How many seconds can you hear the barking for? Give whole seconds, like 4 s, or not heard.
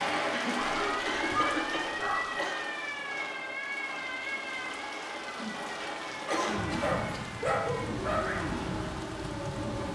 4 s.